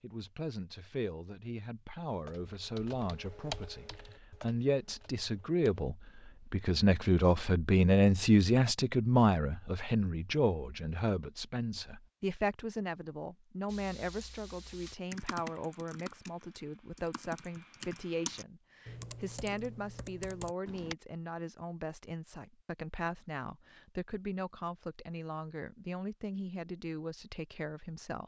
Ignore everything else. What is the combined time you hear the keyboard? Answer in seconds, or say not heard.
11 s.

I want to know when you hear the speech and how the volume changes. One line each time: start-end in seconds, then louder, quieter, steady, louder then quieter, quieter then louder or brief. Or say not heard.
0.0-28.2 louder then quieter.